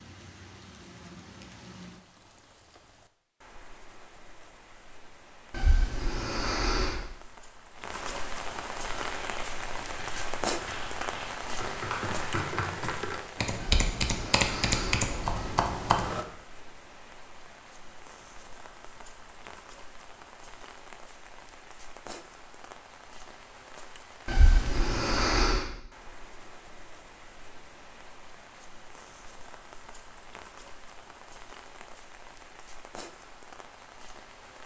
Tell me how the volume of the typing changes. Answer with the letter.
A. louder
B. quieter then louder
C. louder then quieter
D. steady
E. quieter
A.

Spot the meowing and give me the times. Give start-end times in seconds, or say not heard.
5.5-7.0, 13.6-15.6, 24.2-25.6.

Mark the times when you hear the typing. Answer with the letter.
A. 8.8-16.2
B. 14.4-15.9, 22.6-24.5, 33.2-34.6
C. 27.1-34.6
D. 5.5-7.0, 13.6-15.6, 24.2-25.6
A.